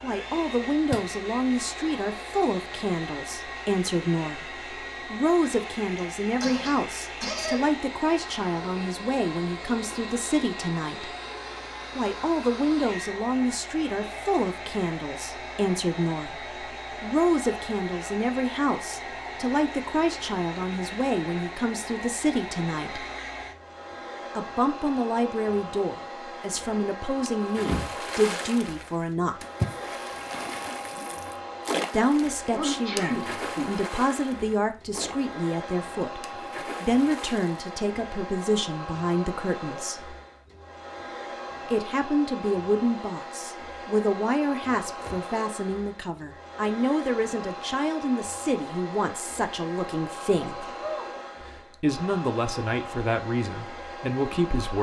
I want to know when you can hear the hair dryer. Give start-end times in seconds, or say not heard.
0.0-54.7.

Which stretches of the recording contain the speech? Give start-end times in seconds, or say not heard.
0.0-11.2, 11.9-23.1, 24.4-29.4, 31.9-40.1, 41.6-50.6, 51.5-54.7.